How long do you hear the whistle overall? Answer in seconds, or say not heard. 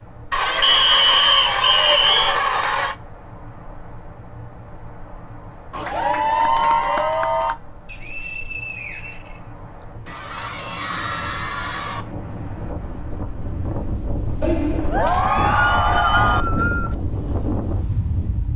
6 s.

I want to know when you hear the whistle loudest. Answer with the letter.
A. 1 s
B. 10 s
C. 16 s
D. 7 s
A.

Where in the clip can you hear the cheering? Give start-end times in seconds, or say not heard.
0.3-3.0, 5.7-7.5, 10.1-12.1, 14.4-16.4.